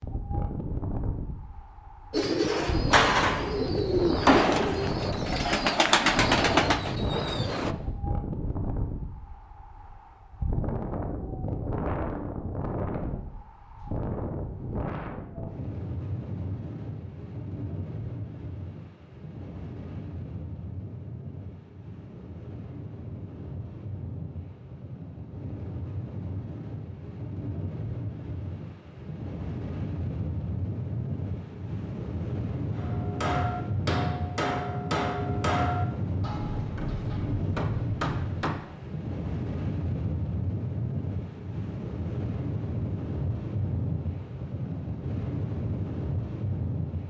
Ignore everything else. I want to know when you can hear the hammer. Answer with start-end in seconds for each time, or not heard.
32.8-38.6.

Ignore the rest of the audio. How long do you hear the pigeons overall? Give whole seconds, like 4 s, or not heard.
6 s.